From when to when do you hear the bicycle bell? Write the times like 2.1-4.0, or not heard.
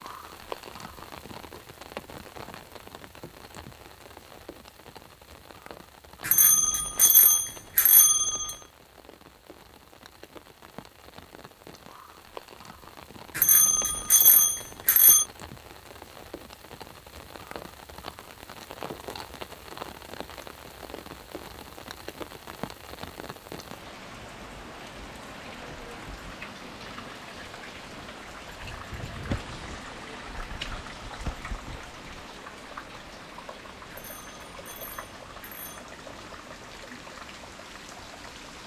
6.2-8.6, 13.3-15.2, 33.9-35.9.